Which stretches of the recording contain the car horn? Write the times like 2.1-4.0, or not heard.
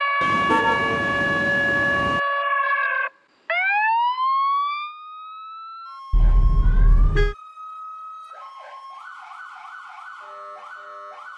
0.2-2.2, 6.1-7.3.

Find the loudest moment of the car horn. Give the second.
1 s.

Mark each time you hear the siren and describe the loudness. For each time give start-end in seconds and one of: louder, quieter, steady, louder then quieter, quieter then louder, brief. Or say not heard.
0.0-11.3 quieter.